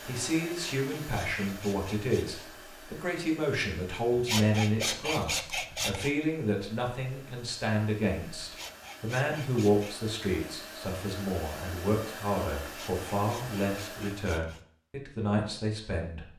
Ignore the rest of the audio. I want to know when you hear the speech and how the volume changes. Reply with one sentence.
The speech can be heard from 0.0 to 16.2 s, at a steady volume.